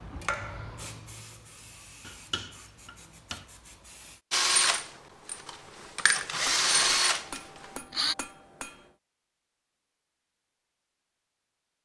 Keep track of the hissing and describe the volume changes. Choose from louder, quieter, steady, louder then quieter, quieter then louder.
quieter.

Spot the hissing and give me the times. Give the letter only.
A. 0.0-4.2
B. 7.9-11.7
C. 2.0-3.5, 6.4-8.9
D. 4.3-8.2
A.